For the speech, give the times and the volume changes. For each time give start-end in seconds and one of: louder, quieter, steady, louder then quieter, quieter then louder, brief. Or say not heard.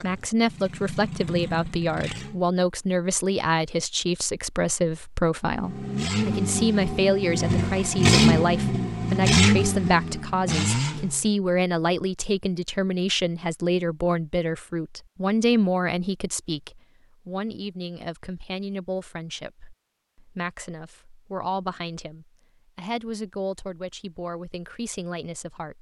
0.0-25.7 quieter.